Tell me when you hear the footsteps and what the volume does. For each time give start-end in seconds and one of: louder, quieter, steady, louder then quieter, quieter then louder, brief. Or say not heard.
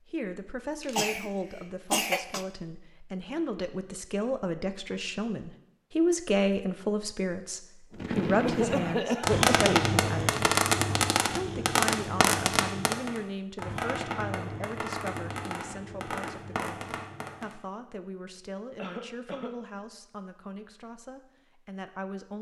not heard.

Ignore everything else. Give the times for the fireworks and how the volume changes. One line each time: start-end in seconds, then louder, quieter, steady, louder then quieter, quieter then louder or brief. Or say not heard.
8.0-17.6 quieter.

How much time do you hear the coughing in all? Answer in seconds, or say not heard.
3 s.